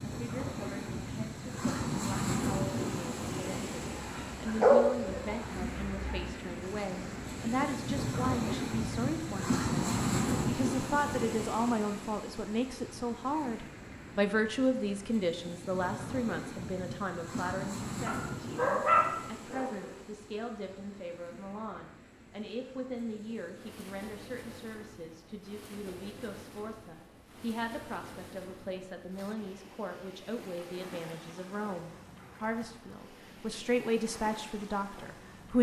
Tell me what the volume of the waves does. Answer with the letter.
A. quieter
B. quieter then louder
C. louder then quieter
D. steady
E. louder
A.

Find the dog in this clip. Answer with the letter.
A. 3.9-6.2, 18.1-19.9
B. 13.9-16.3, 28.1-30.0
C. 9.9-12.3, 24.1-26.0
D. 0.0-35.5
A.